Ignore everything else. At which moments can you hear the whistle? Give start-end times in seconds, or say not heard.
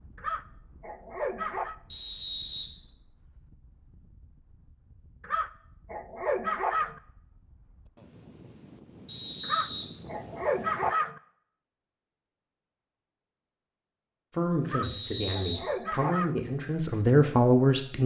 1.9-2.7, 9.1-9.8, 14.8-15.6.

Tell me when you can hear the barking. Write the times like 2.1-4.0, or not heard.
0.1-1.8, 5.2-7.0, 9.4-11.2, 14.7-16.4.